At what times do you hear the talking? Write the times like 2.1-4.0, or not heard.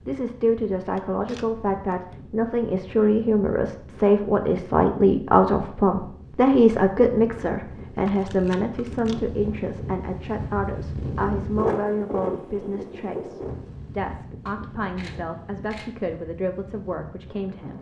0.1-17.7.